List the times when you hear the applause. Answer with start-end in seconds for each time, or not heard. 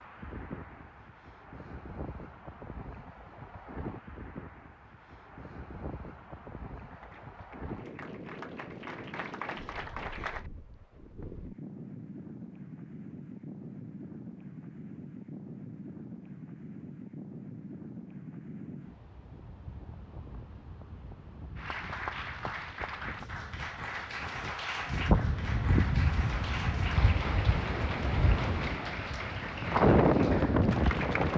6.9-10.5, 21.6-31.3.